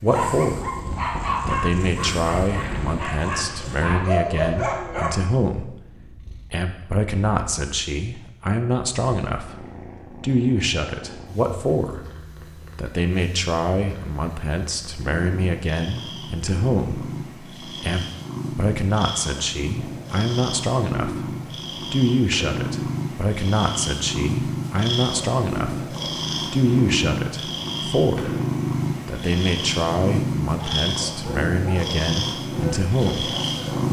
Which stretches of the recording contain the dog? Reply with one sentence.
The dog can be heard from 0.1 to 5.1 s and from 30.5 to 33.8 s.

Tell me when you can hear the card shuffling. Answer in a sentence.
The card shuffling can't be heard in this clip.